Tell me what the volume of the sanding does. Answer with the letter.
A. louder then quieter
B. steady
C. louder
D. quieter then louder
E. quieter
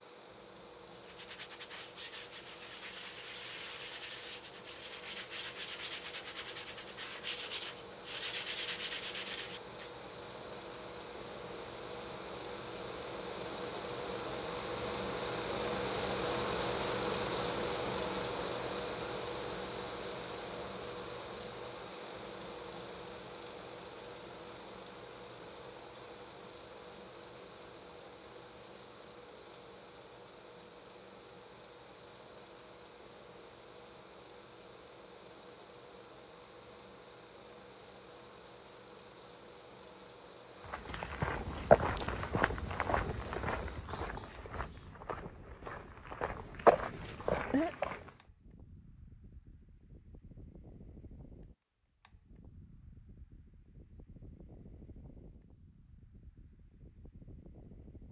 C.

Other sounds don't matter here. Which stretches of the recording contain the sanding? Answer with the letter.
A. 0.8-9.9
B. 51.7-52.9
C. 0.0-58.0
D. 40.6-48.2
A.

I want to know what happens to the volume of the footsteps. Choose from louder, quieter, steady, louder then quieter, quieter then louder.
quieter then louder.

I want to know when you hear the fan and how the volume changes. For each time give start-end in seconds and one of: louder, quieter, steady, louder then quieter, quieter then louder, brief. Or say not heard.
0.0-58.0 louder then quieter.